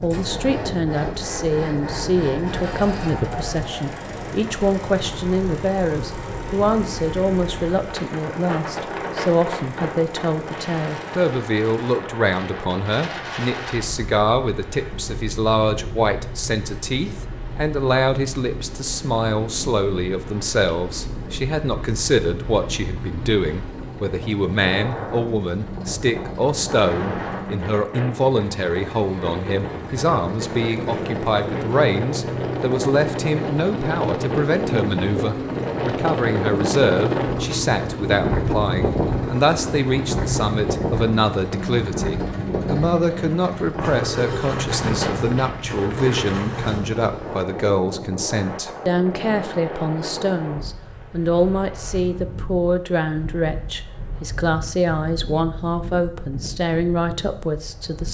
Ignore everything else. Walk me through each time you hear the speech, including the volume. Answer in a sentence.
The speech can be heard from 0.0 to 58.0 s, at a steady volume.